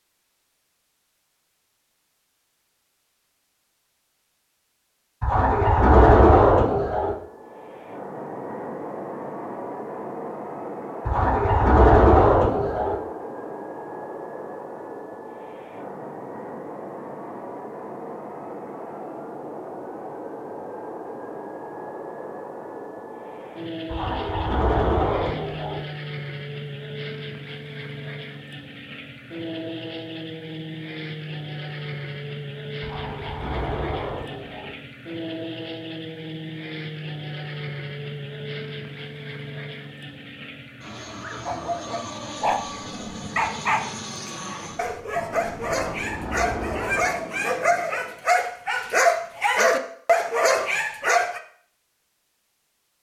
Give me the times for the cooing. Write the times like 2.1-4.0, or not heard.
5.2-7.2, 11.1-13.0, 23.9-25.8, 32.8-34.8, 45.8-47.2.